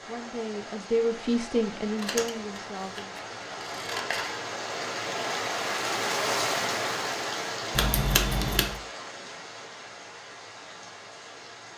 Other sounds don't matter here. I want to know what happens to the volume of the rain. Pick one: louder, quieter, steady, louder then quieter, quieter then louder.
louder then quieter.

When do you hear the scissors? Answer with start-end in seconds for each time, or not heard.
1.9-4.4, 7.8-8.8.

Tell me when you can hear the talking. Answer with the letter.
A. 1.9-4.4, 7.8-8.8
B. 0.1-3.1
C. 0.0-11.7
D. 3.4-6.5
B.